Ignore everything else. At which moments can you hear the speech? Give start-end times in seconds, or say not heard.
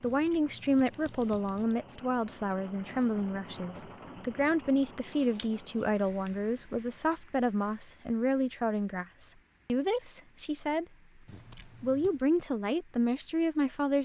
0.0-10.8, 11.8-14.0.